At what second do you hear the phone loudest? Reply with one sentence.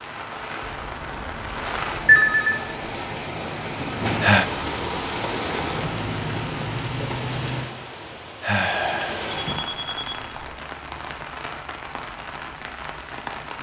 The volume of the phone peaks at 2 seconds.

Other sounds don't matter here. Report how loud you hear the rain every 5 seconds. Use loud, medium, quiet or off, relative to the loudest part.
loud, loud, medium.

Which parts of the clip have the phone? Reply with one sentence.
The phone can be heard from 0.6 to 2.6 s and from 9.3 to 10.6 s.